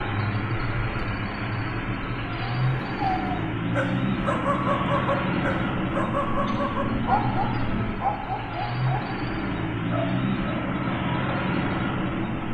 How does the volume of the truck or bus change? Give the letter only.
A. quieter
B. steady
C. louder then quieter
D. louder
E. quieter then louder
B.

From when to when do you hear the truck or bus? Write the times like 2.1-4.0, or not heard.
0.0-12.5.